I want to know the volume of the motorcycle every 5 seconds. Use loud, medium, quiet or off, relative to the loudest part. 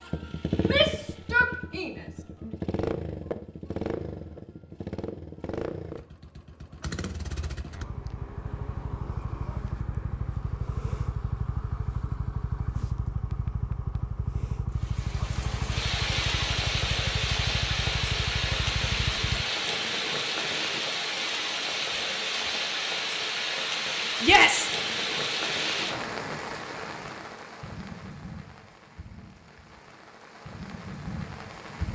loud, loud, loud, loud, off, off, off.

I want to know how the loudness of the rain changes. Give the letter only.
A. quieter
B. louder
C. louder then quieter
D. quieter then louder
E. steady
A.